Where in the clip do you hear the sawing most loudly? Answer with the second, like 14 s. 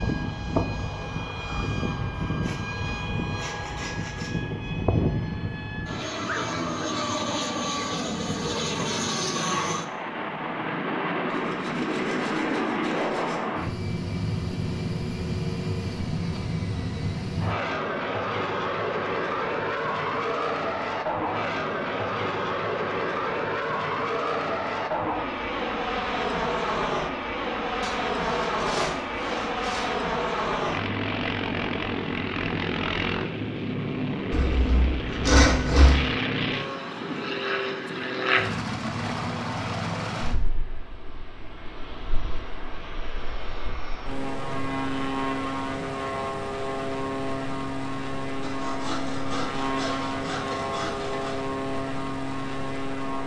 35 s.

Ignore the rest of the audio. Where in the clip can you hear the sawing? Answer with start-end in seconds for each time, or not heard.
2.1-4.3, 11.2-13.4, 27.8-29.9, 34.3-36.0, 48.4-51.4.